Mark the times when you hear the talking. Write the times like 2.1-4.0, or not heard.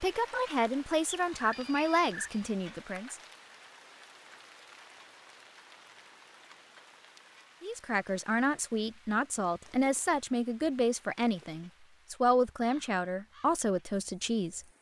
0.0-3.1, 7.6-14.7.